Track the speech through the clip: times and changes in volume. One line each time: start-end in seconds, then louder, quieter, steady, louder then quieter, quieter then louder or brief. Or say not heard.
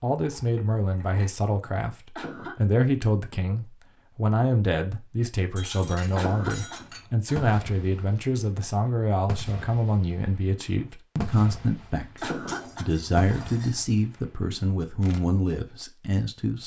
0.0-16.6 steady.